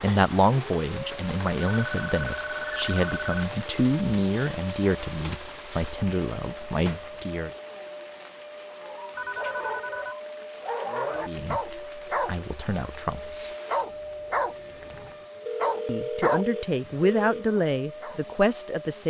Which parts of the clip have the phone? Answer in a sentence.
You can hear the phone from 1.6 to 3.5 s, from 9.2 to 10.2 s and from 15.4 to 17.4 s.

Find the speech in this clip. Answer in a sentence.
You can hear the speech from 0.0 to 7.5 s, from 11.2 to 13.5 s and from 15.8 to 19.0 s.